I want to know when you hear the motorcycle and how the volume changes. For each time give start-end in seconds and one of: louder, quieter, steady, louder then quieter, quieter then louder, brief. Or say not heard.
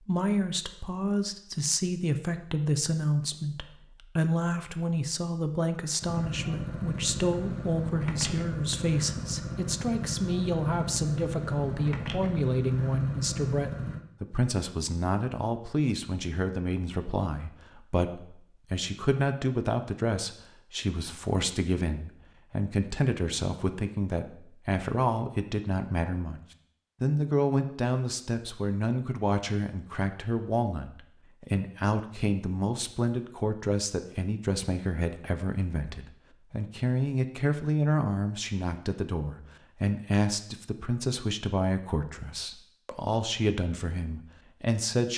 6.0-14.0 steady.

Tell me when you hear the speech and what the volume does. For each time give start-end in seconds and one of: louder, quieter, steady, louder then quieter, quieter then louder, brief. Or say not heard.
0.1-26.4 steady
27.0-45.1 steady.